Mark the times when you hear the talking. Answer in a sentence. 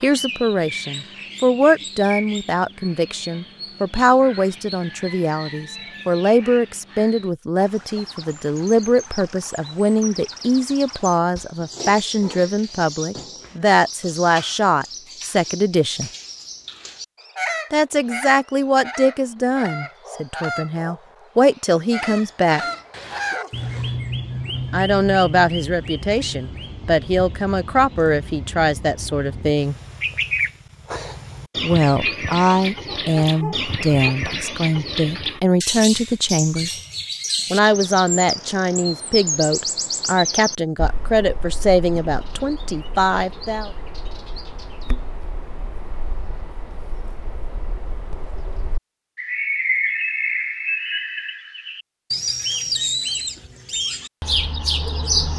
You can hear the talking from 0.0 to 16.1 s, from 17.7 to 22.6 s, from 24.7 to 29.8 s, from 31.6 to 36.8 s and from 37.5 to 43.7 s.